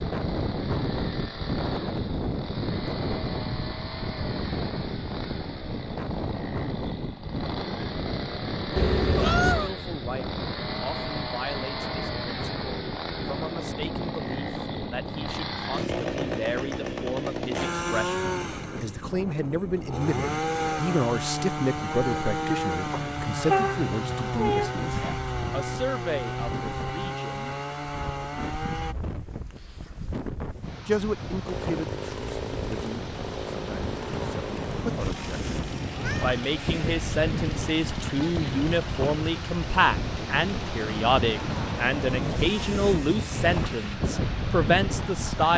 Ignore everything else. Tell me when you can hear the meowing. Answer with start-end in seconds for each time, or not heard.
8.8-9.7, 22.9-25.2, 35.9-36.4.